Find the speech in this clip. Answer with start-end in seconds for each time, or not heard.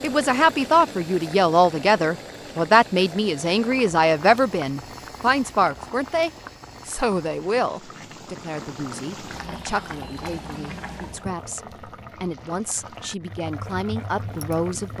0.0-14.9.